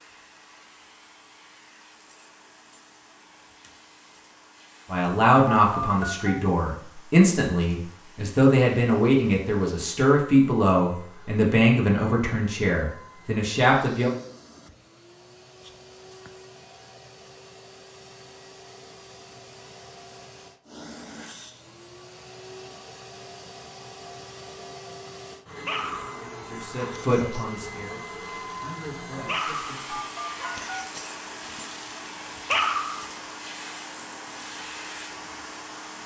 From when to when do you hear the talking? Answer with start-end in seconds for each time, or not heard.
4.9-14.1, 26.4-30.1.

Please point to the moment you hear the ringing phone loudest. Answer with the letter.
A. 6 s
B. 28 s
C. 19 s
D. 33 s
A.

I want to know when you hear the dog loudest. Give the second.
33 s.